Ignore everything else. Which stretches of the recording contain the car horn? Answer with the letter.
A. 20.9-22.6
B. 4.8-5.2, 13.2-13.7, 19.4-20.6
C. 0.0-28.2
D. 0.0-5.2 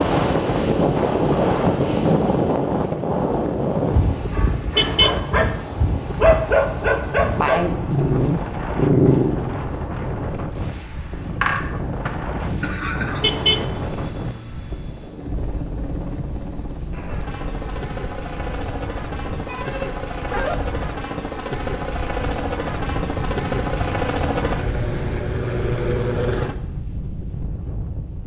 B.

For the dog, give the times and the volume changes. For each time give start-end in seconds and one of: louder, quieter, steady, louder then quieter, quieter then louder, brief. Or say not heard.
4.3-9.4 louder.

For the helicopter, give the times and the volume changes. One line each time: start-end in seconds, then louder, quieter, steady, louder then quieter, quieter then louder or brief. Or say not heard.
6.0-26.6 louder.